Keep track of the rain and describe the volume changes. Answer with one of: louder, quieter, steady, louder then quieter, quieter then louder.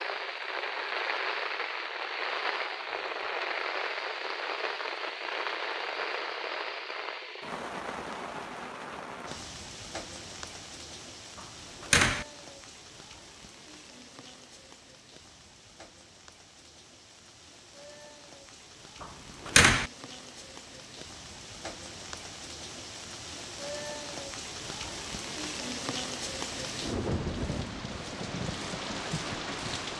quieter then louder.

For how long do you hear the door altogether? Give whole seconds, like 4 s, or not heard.
2 s.